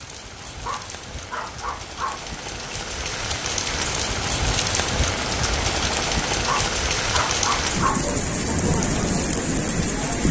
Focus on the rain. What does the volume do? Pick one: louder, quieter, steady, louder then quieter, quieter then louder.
louder.